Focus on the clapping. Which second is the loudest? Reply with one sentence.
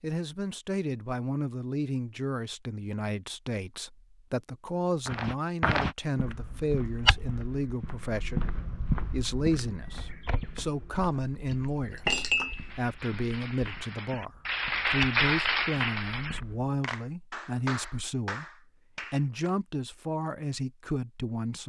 The volume of the clapping peaks at 15 seconds.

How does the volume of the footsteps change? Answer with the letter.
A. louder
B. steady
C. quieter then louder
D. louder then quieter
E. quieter
C.